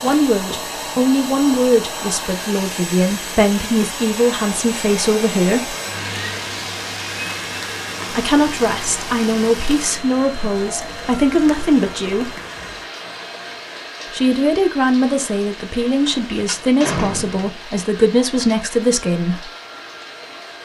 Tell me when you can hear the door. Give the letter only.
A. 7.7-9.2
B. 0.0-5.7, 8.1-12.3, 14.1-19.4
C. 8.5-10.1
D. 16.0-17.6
D.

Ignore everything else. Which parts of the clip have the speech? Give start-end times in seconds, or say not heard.
0.0-5.7, 8.1-12.3, 14.1-19.4.